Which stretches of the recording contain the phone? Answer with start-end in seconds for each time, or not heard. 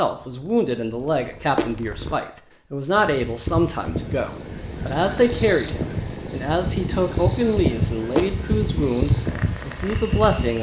not heard.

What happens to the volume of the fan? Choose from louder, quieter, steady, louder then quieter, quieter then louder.
louder.